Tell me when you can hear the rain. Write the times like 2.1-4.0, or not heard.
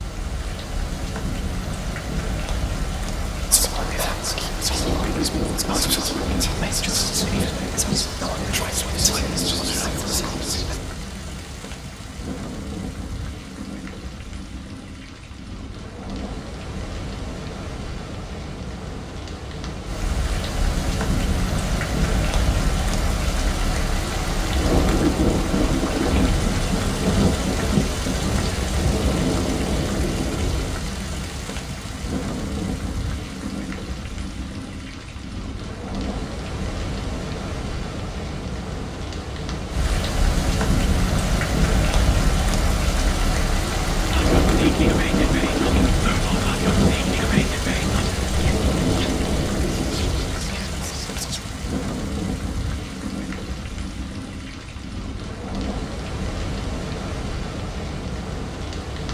0.0-59.0.